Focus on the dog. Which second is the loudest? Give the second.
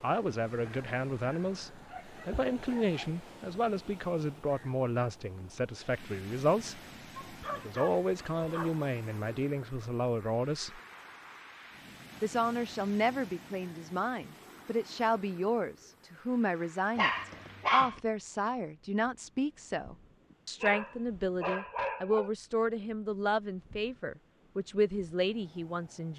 18 s.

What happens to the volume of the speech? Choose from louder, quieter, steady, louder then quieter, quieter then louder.
steady.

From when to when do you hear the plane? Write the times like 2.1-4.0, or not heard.
not heard.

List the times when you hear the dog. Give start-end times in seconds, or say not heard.
0.7-3.1, 7.2-8.9, 16.9-18.0, 20.3-22.3.